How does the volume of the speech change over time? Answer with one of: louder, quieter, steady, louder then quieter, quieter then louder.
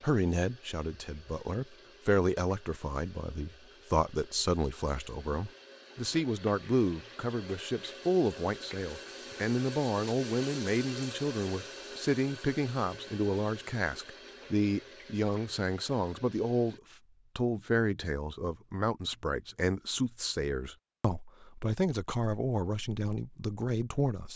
steady.